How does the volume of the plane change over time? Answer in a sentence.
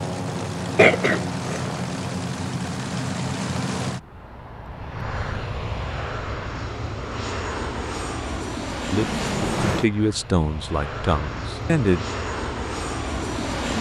The loudness of the plane stays about the same.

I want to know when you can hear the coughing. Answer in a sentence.
You can hear the coughing from 0.8 to 1.6 s.